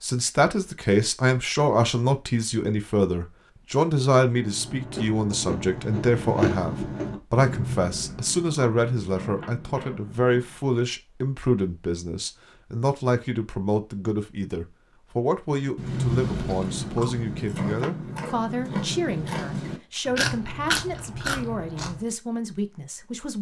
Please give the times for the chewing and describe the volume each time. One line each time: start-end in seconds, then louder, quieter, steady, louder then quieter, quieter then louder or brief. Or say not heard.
4.3-10.6 louder then quieter
15.7-22.0 steady.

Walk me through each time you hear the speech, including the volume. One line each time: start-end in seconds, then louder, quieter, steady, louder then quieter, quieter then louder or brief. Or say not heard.
0.0-23.3 quieter.